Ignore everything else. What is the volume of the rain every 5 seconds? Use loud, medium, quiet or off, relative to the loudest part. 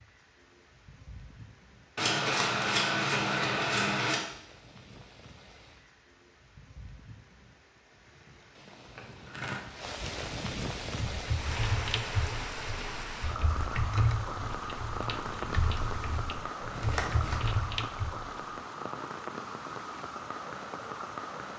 quiet, quiet, loud, loud, loud.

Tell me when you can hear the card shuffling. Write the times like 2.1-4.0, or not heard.
1.9-4.2, 8.9-9.7, 16.7-17.4.